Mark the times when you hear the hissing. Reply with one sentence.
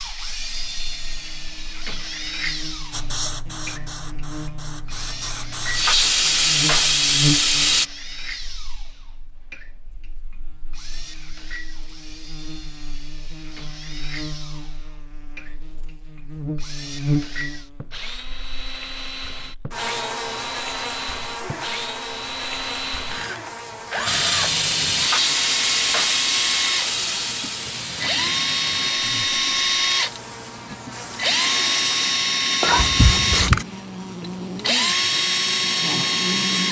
The hissing can be heard from 2.9 to 7.8 s and from 24.1 to 33.6 s.